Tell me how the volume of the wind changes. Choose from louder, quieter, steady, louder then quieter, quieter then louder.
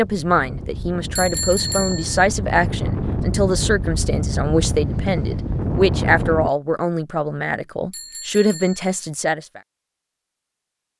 louder.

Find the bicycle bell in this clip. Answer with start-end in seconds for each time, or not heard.
1.1-2.2, 7.9-8.8.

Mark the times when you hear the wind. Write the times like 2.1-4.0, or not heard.
0.0-6.5.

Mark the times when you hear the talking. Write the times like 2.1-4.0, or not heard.
0.0-9.6.